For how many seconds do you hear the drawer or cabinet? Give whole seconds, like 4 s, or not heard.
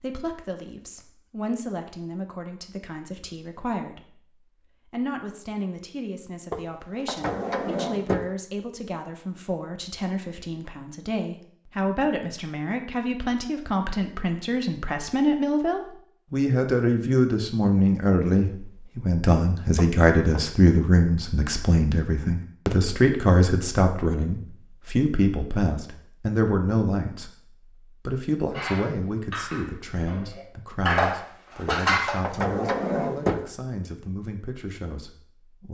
4 s.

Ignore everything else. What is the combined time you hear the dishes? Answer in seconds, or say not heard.
4 s.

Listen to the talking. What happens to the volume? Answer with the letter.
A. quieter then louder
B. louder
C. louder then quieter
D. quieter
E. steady
C.